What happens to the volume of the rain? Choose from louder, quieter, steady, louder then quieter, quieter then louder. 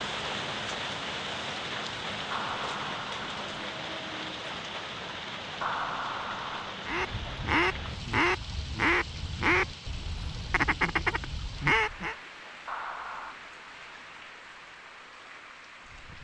quieter.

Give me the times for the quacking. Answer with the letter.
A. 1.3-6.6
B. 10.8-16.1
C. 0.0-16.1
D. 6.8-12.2
D.